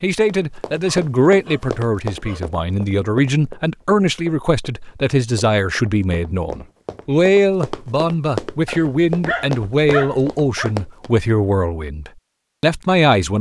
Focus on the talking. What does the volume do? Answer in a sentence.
The loudness of the talking stays about the same.